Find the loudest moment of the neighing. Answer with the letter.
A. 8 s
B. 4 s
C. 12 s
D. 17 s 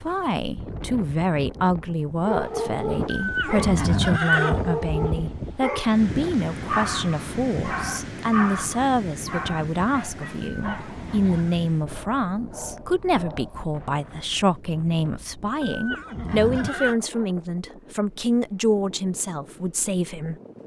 B.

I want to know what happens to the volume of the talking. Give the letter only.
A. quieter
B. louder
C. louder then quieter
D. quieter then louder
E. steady
E.